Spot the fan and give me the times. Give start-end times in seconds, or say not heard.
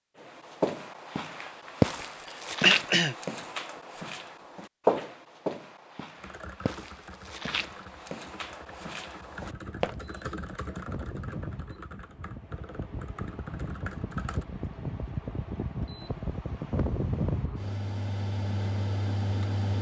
9.3-19.7.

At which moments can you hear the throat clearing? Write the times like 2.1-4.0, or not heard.
2.6-3.1.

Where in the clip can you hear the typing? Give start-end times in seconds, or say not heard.
6.2-14.4.